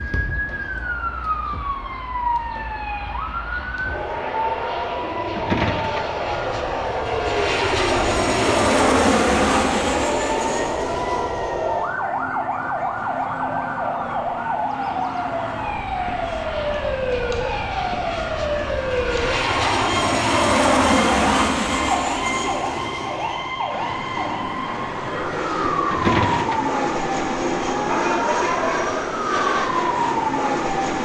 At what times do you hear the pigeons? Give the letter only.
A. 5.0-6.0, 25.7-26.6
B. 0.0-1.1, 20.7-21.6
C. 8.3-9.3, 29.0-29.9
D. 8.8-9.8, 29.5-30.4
A.